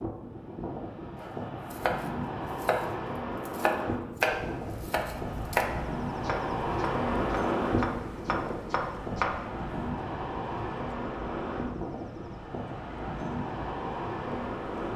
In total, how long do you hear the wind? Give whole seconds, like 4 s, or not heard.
15 s.